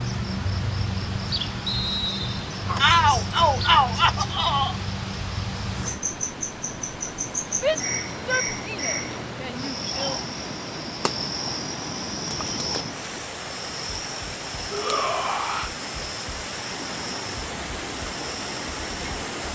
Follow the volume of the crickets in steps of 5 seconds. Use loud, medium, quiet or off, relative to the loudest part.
loud, loud, loud, medium.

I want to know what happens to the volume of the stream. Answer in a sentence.
The volume of the stream goes up.